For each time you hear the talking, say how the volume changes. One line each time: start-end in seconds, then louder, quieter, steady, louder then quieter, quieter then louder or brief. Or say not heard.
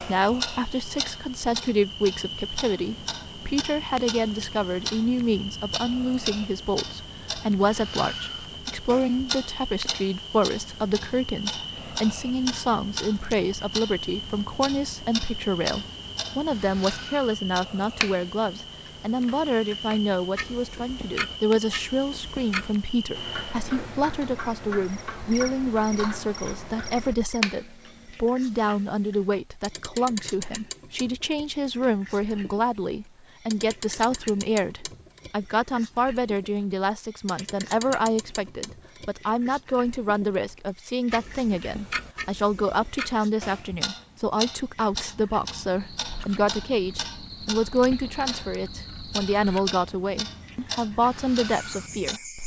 0.0-52.4 steady.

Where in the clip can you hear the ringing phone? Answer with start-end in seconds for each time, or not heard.
not heard.